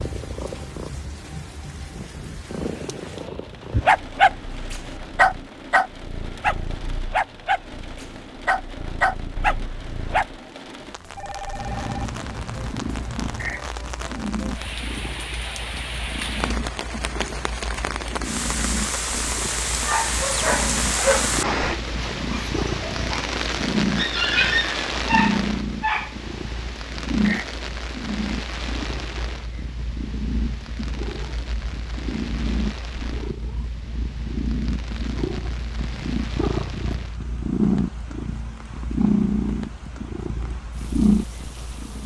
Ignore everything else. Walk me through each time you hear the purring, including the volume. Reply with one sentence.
You can hear the purring from 0.0 to 42.0 s, getting louder.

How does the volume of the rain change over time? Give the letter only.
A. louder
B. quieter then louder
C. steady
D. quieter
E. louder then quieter
E.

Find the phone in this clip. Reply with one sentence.
The phone can be heard from 11.1 to 12.1 s.